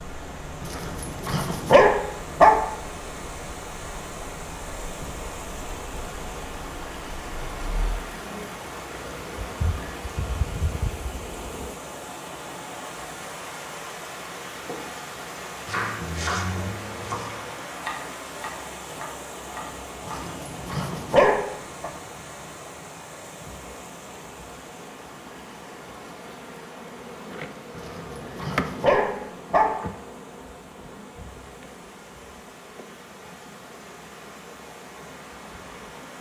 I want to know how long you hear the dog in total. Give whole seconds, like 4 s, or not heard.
6 s.